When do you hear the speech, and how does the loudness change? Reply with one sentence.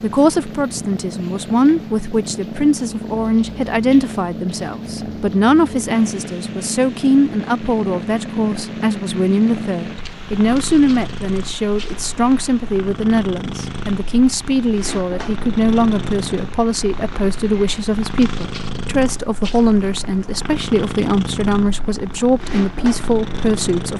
You can hear the speech from 0.0 to 23.9 s, at a steady volume.